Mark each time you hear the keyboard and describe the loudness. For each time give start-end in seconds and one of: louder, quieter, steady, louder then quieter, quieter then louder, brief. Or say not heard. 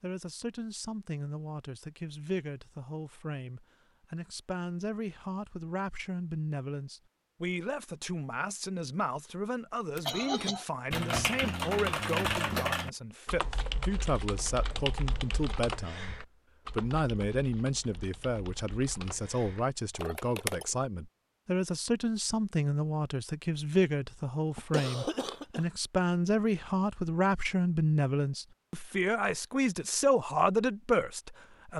9.9-20.7 quieter.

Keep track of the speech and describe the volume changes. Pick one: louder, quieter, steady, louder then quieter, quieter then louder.
louder.